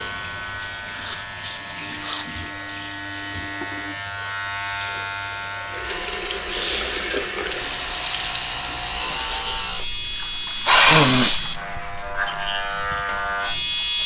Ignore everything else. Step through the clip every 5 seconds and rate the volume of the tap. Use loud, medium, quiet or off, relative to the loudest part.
medium, loud, medium.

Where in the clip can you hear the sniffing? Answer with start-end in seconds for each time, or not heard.
0.9-2.3, 6.5-7.2, 10.6-11.4.